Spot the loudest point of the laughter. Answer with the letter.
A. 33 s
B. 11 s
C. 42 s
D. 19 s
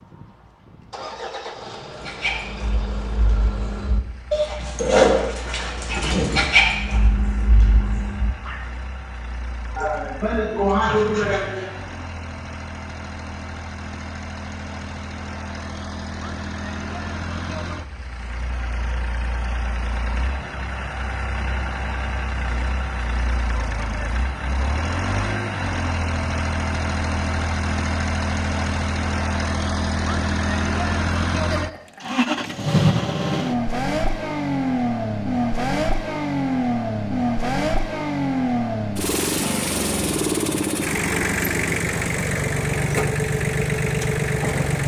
B.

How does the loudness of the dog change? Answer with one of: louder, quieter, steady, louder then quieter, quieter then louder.
louder then quieter.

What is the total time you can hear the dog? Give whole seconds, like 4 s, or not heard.
7 s.